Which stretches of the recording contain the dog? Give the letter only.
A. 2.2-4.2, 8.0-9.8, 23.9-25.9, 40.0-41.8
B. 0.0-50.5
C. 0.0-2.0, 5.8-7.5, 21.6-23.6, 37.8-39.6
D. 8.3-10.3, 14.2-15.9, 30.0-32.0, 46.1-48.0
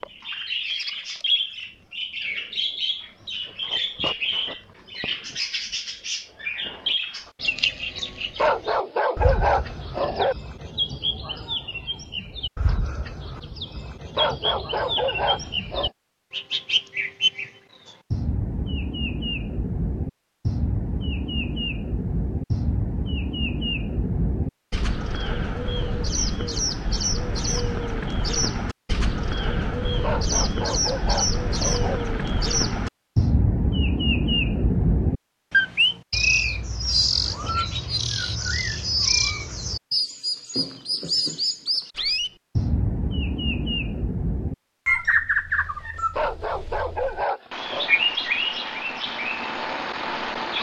D.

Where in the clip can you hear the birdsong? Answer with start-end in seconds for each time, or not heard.
0.0-50.5.